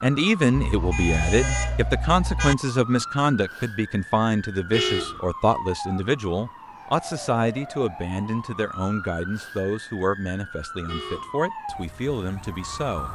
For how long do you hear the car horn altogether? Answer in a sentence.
You can hear the car horn for 3 seconds altogether.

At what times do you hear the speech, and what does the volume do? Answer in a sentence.
The speech can be heard from 0.0 to 13.1 s, getting quieter.